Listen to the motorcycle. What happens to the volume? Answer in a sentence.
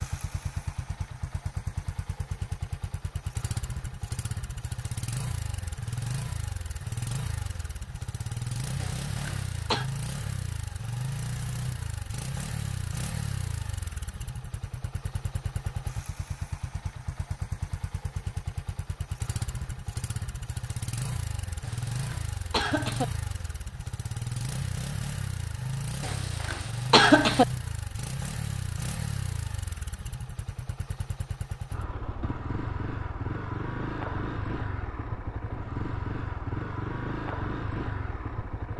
The volume of the motorcycle stays about the same.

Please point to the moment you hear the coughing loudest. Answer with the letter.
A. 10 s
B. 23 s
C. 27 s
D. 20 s
C.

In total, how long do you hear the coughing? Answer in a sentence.
The coughing can be heard for 4 seconds in total.